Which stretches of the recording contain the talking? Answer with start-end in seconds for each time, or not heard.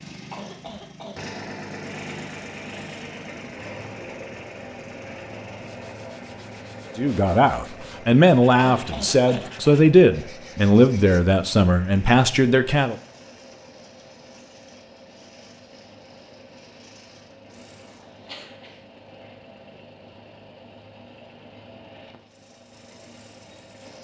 7.0-12.9.